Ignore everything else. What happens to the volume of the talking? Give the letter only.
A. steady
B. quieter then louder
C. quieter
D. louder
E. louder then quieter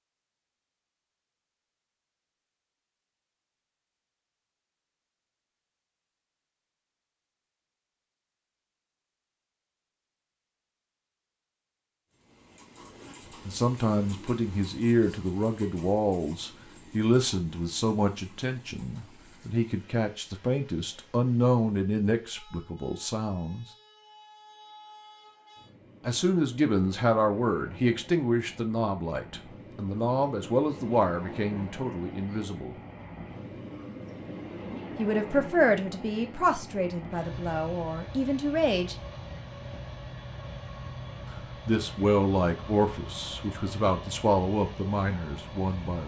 A.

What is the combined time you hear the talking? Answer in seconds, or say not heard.
25 s.